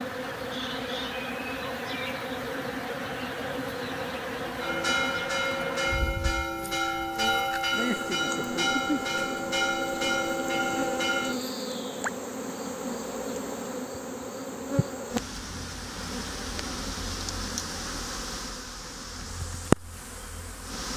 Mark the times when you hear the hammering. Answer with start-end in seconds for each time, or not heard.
not heard.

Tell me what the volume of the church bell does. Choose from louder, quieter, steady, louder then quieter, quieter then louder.
steady.